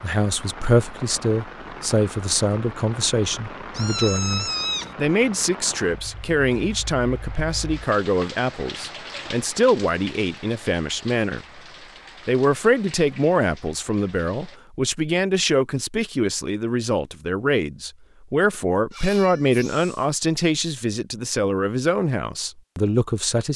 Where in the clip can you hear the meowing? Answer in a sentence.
You can hear the meowing from 3.7 to 5.0 s and from 18.9 to 20.1 s.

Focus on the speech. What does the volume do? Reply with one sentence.
The loudness of the speech stays about the same.